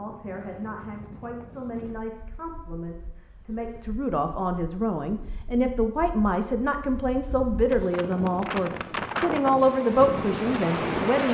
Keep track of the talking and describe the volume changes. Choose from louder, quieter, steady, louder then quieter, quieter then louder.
louder.